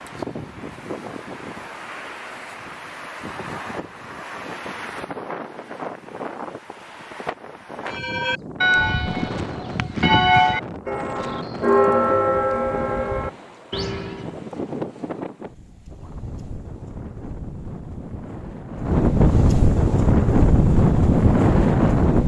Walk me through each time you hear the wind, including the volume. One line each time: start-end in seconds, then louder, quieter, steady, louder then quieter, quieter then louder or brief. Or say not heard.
0.0-22.2 louder.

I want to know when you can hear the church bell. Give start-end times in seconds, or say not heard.
7.9-14.3.